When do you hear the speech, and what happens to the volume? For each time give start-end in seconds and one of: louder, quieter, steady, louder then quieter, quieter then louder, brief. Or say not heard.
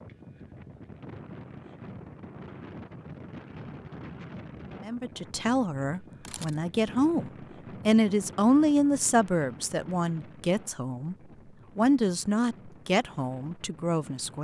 4.8-11.2 louder then quieter
11.8-14.4 brief.